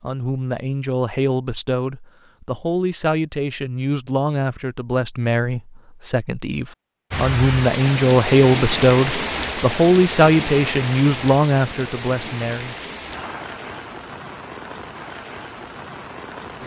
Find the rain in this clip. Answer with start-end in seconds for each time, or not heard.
7.1-16.6.